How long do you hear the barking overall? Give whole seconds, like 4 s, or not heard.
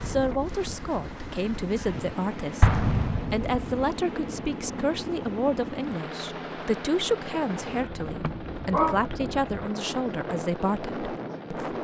2 s.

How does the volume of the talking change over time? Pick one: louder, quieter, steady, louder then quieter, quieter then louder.
steady.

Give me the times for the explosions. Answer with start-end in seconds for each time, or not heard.
2.6-3.8.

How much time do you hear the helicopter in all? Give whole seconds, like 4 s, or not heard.
12 s.